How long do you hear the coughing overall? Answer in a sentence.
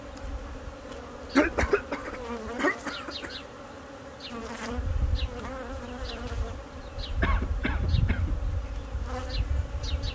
You can hear the coughing for 3 seconds altogether.